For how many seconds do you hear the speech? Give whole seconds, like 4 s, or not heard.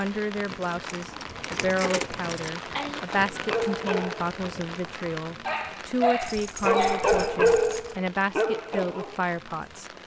10 s.